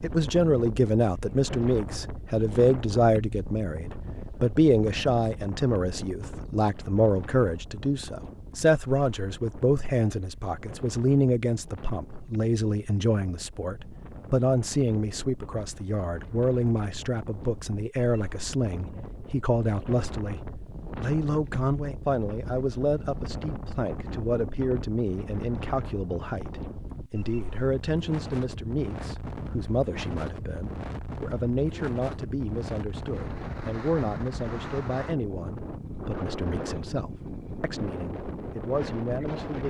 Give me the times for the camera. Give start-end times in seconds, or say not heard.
not heard.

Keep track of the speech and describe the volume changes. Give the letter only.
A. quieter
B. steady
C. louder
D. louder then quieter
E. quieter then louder
A.